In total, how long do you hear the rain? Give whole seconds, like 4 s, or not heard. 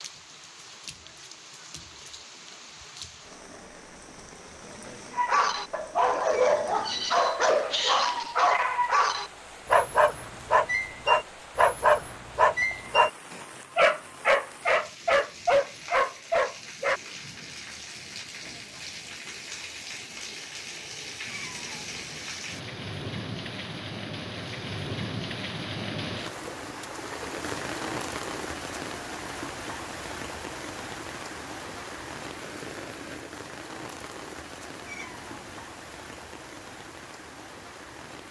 38 s.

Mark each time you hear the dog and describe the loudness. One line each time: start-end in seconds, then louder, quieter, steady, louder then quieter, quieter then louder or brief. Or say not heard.
5.1-17.0 steady.